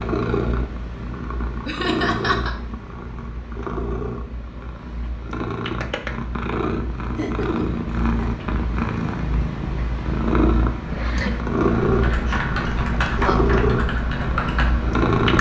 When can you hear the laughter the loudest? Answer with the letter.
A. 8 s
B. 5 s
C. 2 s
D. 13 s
C.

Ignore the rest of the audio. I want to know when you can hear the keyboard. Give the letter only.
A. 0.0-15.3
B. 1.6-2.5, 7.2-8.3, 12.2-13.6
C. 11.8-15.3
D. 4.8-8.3
C.